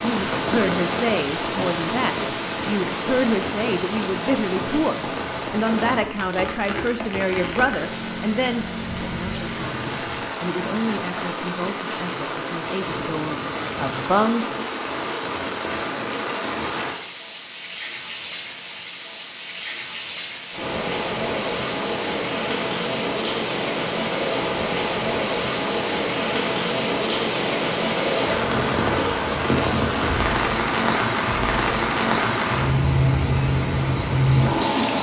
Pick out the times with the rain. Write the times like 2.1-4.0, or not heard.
0.0-34.9.